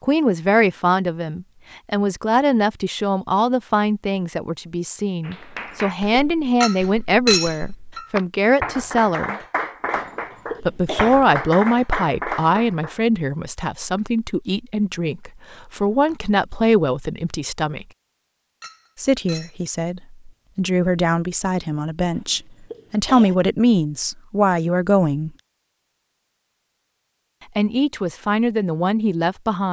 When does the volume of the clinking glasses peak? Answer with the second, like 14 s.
7 s.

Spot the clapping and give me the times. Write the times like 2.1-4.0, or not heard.
5.2-13.0.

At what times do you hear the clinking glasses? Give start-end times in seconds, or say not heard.
6.6-8.1, 18.6-19.6.